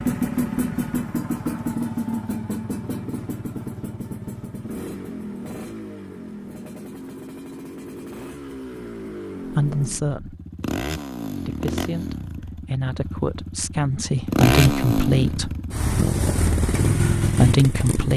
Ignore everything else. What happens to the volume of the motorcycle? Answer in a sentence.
The volume of the motorcycle goes down, then up.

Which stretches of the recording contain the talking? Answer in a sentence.
You can hear the talking from 9.5 to 10.3 s, from 11.4 to 15.5 s and from 17.4 to 18.1 s.